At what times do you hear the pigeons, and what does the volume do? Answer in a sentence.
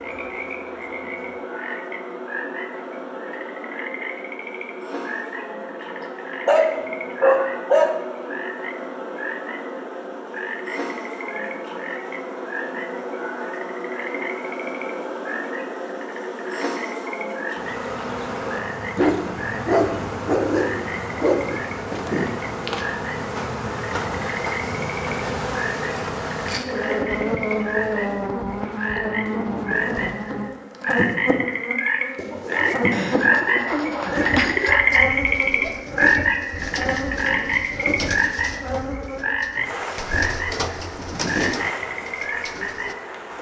You can hear the pigeons from 32.1 to 43.0 s, getting quieter then louder.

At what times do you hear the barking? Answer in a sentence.
The barking can be heard from 6.0 to 8.0 s, from 18.9 to 21.6 s and from 32.3 to 35.0 s.